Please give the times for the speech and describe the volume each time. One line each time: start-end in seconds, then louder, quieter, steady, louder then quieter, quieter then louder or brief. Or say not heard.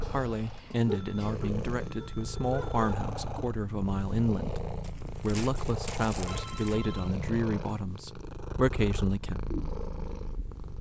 0.1-9.4 steady.